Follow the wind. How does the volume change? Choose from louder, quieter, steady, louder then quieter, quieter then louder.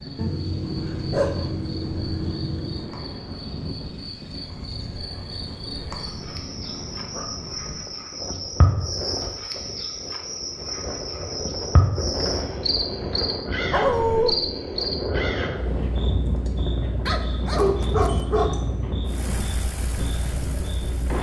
louder.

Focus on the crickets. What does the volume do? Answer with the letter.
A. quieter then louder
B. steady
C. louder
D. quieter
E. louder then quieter
E.